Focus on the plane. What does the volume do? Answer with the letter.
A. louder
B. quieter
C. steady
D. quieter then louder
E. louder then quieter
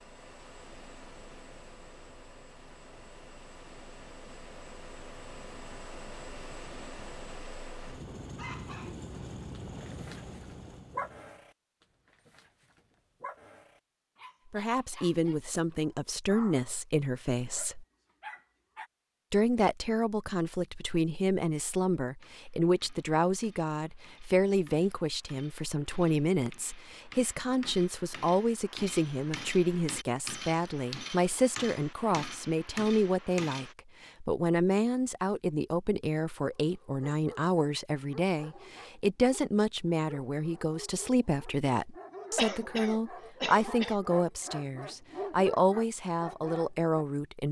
A.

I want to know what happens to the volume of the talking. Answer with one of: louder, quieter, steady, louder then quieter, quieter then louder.
steady.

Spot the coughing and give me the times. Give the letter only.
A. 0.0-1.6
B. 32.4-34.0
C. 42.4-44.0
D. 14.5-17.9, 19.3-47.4
C.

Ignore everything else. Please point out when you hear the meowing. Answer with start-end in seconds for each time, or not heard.
not heard.